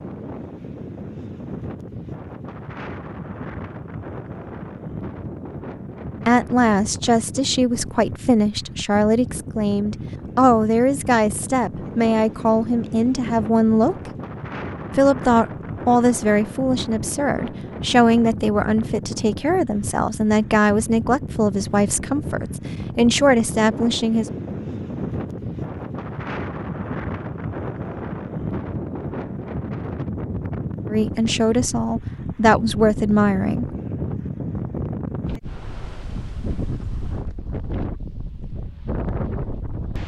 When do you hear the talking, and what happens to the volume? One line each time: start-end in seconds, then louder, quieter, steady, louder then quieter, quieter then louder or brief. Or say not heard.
6.2-14.1 steady
14.9-24.2 steady
30.9-33.7 brief.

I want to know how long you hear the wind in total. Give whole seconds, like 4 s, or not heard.
40 s.